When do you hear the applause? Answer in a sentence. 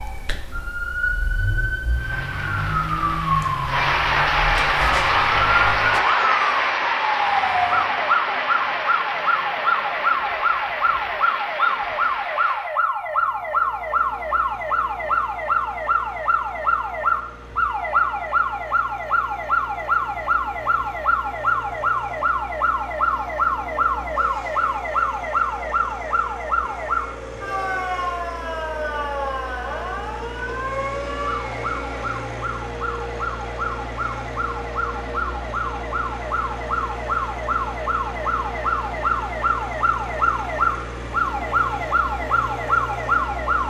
You can hear the applause from 1.9 to 12.8 s.